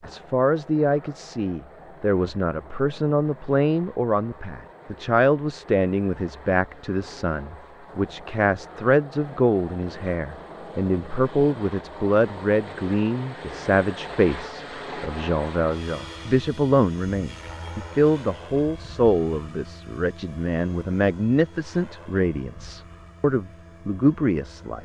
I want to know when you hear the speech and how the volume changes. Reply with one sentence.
The speech can be heard from 0.1 to 24.8 s, at a steady volume.